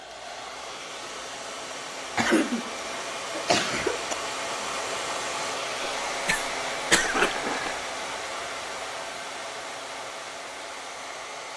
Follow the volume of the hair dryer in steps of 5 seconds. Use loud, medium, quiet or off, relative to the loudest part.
loud, loud, medium.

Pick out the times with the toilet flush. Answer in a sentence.
The toilet flush can be heard from 7.0 to 7.8 s.